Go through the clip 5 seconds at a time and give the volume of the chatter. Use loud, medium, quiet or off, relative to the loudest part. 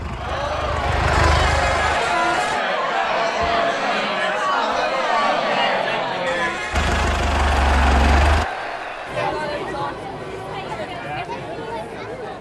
loud, loud, medium.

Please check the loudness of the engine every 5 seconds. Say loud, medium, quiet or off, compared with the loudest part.
loud, loud, off.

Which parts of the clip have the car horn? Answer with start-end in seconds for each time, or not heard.
1.1-2.6, 6.2-7.0.